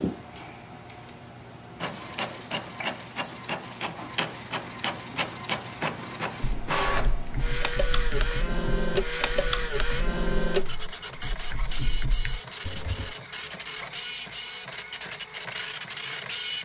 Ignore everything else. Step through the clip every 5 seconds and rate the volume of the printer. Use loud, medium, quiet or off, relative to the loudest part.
medium, loud, loud, loud.